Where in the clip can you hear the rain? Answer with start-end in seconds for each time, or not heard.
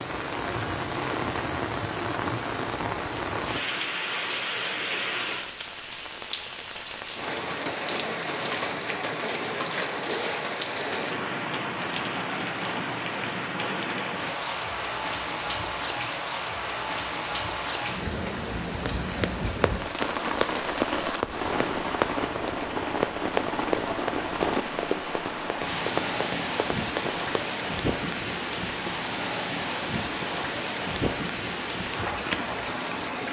0.0-33.2.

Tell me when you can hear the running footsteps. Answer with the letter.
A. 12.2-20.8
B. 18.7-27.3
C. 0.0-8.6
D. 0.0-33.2
B.